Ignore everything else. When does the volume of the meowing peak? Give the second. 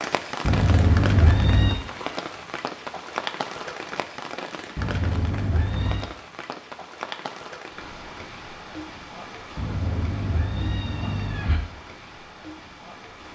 1 s.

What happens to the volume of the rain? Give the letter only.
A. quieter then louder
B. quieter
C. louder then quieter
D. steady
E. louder
B.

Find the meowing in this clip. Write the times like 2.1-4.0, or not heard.
0.5-1.8, 4.8-6.1, 9.6-11.6.